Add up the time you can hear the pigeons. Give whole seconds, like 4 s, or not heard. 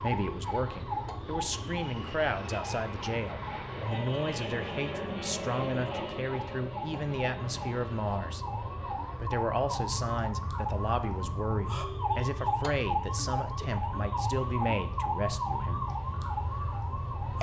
not heard.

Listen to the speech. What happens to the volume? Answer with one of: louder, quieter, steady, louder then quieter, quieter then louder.
steady.